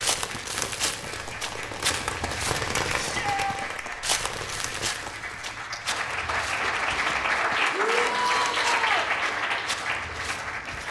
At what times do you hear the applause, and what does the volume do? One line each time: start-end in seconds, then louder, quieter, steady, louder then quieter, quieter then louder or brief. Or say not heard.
0.1-10.8 louder.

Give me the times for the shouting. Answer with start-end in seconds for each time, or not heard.
3.0-3.6, 7.7-9.1.